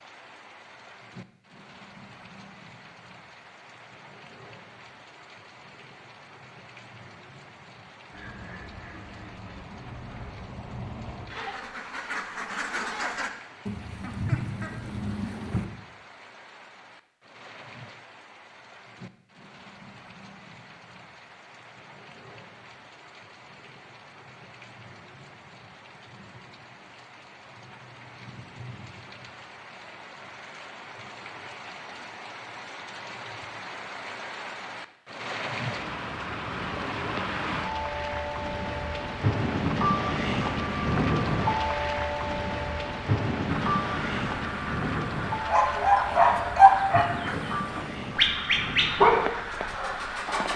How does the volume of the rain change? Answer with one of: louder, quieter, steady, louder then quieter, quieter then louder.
louder.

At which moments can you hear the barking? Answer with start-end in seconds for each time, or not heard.
45.5-50.5.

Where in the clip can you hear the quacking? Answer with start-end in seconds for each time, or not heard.
8.1-15.7, 43.5-50.4.